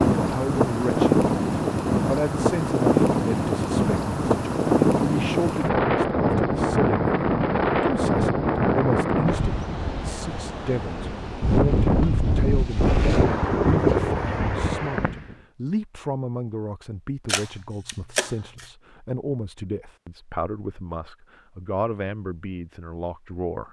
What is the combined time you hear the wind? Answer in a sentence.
The wind can be heard for 15 seconds in total.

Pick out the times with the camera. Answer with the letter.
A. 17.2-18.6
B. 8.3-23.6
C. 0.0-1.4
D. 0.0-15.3
A.